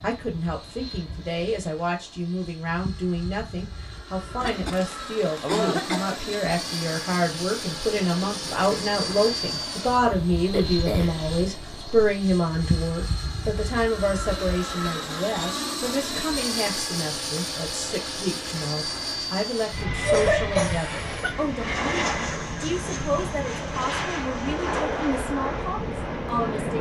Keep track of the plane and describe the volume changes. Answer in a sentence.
The volume of the plane goes up.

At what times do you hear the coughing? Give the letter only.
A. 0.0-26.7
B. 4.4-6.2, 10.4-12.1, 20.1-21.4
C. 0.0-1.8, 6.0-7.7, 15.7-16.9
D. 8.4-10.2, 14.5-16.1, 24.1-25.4
B.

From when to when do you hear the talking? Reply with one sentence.
The talking can be heard from 0.0 to 26.7 s.